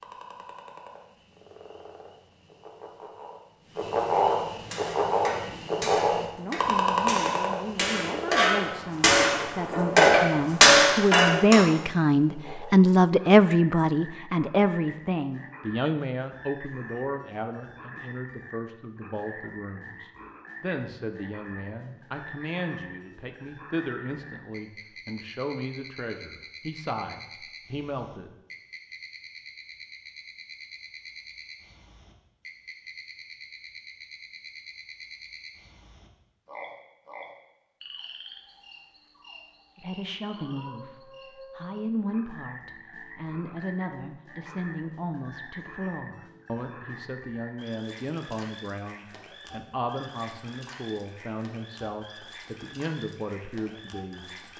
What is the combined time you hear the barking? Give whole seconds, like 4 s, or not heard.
not heard.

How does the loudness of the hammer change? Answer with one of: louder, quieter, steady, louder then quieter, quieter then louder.
louder.